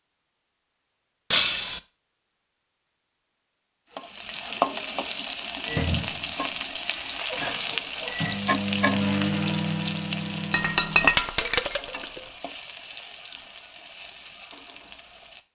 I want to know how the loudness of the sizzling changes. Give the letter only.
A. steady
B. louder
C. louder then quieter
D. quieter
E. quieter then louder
D.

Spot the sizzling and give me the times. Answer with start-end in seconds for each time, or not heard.
3.9-15.5.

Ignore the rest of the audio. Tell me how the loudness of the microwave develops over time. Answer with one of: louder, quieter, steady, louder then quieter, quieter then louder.
louder then quieter.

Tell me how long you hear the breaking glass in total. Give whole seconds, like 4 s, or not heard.
2 s.